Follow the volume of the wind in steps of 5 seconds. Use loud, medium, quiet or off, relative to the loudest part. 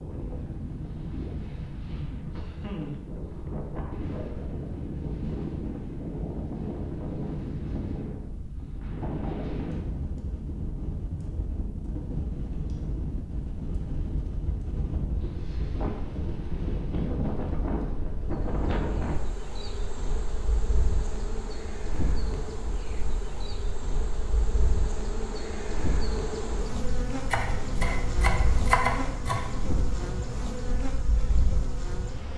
loud, loud, loud, loud, medium, medium, medium.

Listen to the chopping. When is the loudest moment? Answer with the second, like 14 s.
29 s.